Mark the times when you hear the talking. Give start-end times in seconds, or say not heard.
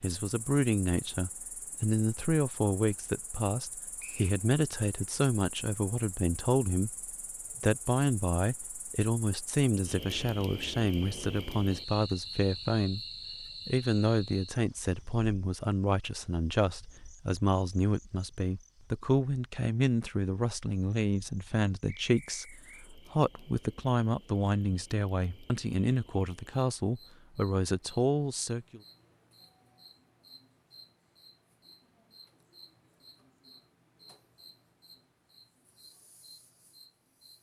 0.0-6.9, 7.6-28.8.